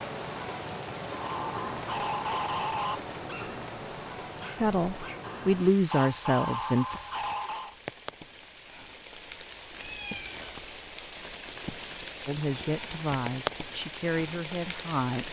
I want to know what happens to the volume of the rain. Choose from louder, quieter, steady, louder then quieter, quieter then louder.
quieter then louder.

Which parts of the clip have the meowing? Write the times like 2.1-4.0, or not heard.
9.8-10.8.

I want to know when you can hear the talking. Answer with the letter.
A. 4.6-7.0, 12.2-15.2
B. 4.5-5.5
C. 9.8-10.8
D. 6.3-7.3
A.